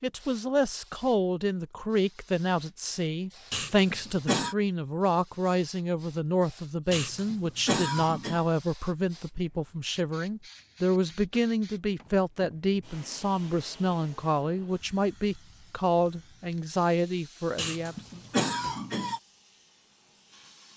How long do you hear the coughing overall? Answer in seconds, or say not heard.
4 s.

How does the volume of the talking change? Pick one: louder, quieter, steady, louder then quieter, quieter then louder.
steady.